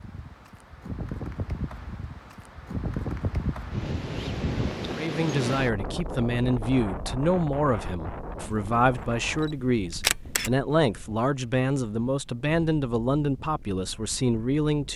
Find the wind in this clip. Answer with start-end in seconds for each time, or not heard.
0.0-14.9.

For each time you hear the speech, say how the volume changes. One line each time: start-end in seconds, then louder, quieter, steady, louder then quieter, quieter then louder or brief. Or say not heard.
5.0-14.9 steady.